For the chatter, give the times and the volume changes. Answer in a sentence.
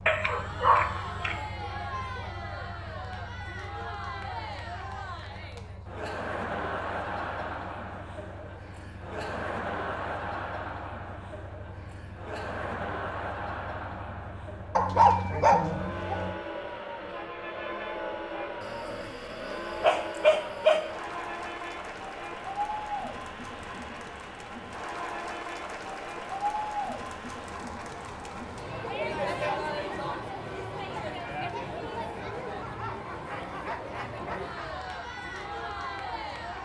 You can hear the chatter from 0.2 to 36.5 s, at a steady volume.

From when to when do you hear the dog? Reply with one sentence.
The dog can be heard from 0.1 to 1.4 s, from 14.8 to 16.4 s, from 18.6 to 20.9 s and from 32.5 to 34.7 s.